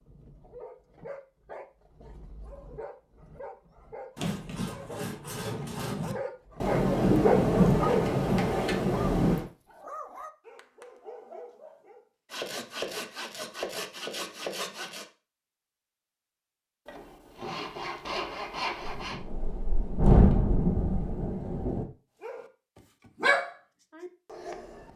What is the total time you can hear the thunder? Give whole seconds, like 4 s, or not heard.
6 s.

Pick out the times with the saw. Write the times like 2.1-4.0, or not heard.
4.2-6.2, 12.3-15.1, 16.9-19.2.